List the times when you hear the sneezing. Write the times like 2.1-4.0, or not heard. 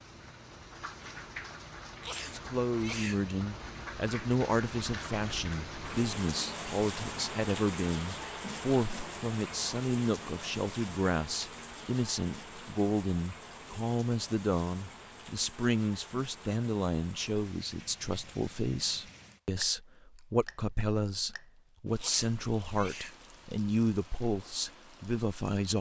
2.0-3.2, 21.9-23.2.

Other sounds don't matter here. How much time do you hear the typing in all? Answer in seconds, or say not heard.
not heard.